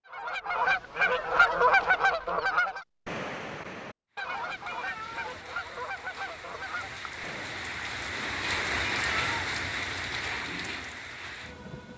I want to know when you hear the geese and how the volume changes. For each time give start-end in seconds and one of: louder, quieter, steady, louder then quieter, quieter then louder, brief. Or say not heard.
0.1-7.7 quieter.